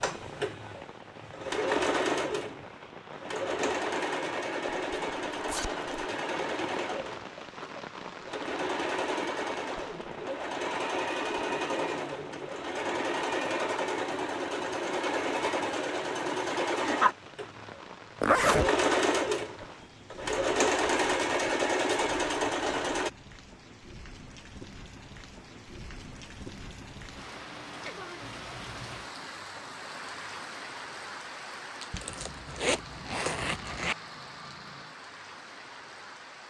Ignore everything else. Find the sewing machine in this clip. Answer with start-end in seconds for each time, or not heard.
0.0-23.1.